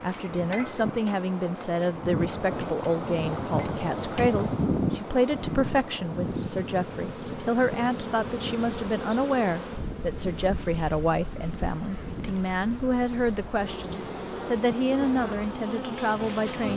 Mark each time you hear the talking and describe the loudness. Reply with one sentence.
You can hear the talking from 0.0 to 16.7 s, at a steady volume.